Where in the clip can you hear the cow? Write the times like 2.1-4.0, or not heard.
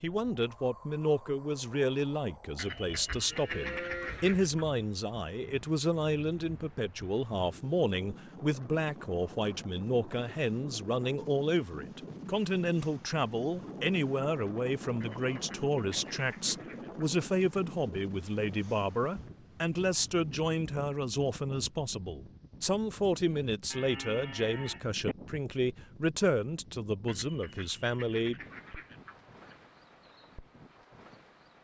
3.0-4.4, 23.7-25.1.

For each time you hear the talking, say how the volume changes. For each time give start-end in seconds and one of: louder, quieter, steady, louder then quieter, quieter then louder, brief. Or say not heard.
0.0-28.4 steady.